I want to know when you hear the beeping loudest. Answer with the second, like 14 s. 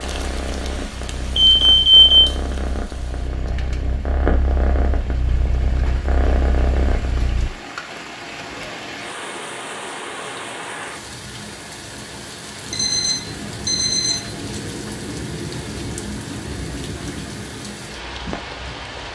2 s.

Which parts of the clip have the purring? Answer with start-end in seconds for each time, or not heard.
0.0-7.5.